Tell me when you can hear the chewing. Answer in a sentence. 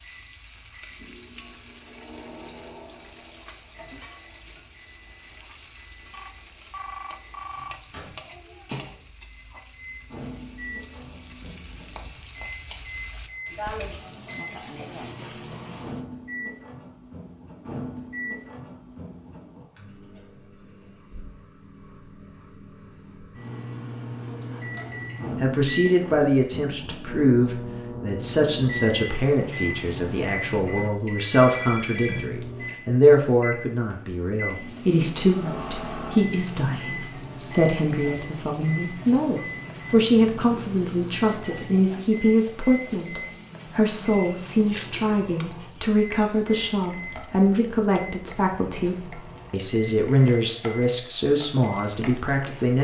You can't hear the chewing here.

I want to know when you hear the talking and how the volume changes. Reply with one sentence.
The talking can be heard from 25.4 to 52.7 s, at a steady volume.